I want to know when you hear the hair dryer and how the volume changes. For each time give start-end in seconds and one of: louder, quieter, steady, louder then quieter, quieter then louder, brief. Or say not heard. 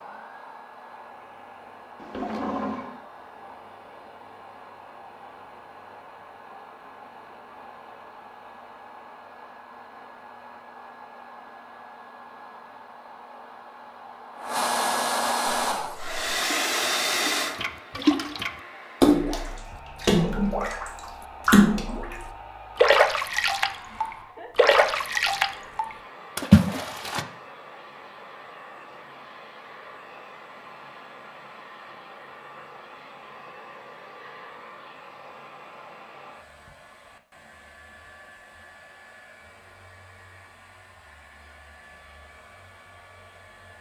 0.0-43.7 louder then quieter.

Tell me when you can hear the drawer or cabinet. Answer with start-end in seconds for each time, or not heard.
1.9-3.0.